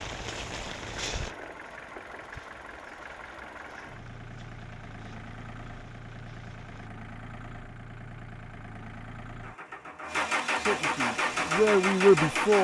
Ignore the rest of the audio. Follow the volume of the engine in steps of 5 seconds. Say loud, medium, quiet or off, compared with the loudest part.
quiet, quiet, loud.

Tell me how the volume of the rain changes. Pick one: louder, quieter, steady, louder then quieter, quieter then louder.
quieter.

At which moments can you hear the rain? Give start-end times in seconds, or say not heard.
0.0-6.9.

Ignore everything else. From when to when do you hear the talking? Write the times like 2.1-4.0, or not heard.
10.5-12.6.